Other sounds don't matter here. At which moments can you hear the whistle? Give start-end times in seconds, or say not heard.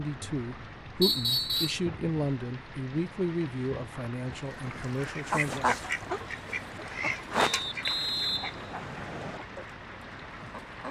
1.0-1.8, 7.3-9.4.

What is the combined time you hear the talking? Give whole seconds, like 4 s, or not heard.
6 s.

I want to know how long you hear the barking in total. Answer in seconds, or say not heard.
not heard.